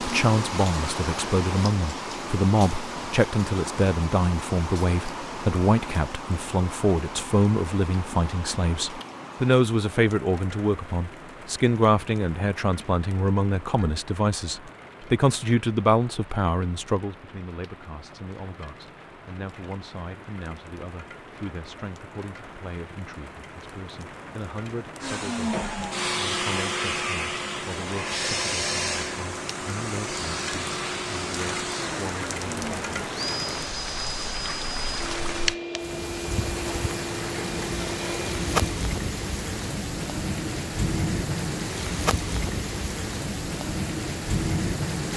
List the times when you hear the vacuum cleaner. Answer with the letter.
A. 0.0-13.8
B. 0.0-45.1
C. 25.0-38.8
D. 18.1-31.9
C.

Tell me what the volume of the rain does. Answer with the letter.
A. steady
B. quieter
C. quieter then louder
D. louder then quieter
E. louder
C.